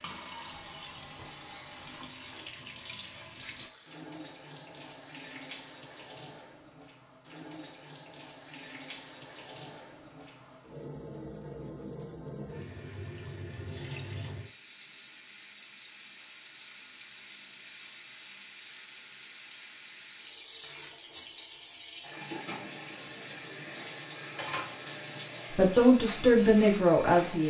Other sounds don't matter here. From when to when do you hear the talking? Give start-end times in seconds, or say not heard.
25.6-27.4.